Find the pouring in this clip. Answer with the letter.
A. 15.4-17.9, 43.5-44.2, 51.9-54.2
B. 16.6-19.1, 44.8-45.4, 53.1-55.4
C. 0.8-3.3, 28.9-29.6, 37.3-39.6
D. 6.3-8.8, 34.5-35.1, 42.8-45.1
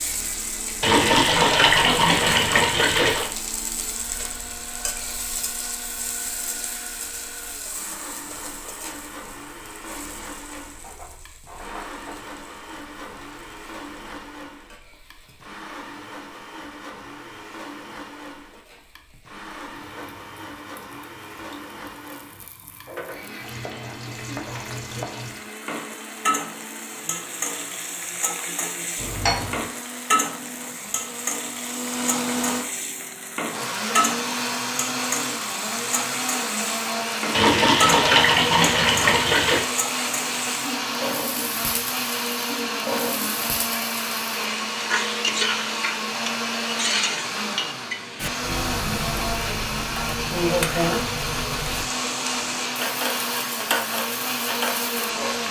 C.